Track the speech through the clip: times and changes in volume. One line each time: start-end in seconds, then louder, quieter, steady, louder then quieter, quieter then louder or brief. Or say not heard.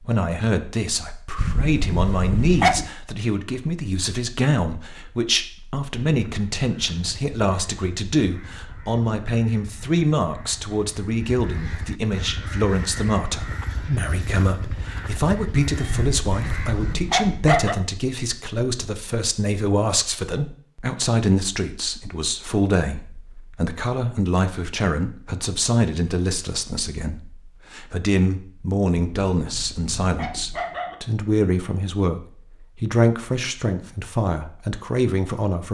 0.0-35.6 steady.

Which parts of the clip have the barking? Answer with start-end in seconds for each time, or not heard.
1.4-2.9, 15.8-17.8, 28.9-30.9.